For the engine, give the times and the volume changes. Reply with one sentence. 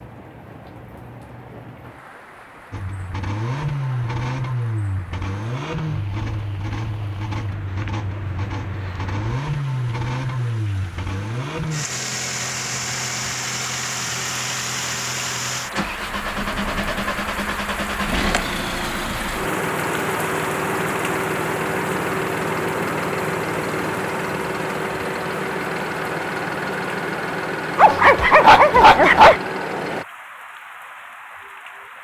The engine can be heard from 2.7 to 30.1 s, at a steady volume.